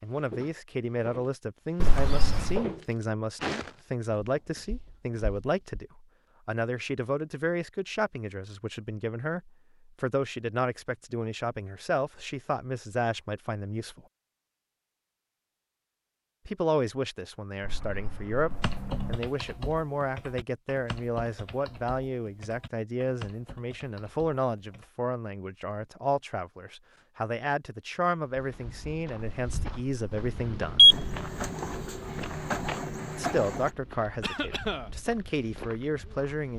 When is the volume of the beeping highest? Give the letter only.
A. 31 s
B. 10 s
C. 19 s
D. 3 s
A.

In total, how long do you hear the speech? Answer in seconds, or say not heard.
32 s.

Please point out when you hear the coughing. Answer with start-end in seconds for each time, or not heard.
34.2-34.9.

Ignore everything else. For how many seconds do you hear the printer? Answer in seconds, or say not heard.
3 s.